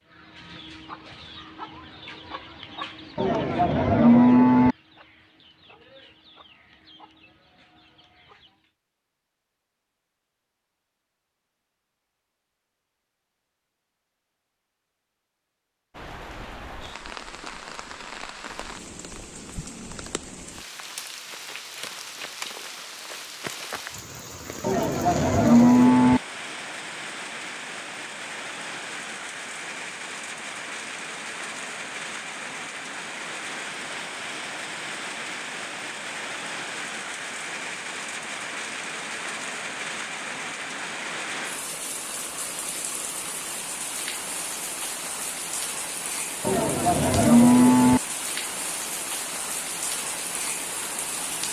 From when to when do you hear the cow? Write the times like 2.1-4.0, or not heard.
3.1-4.8, 24.6-26.2, 46.4-48.0.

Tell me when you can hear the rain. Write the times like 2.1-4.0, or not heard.
15.9-51.4.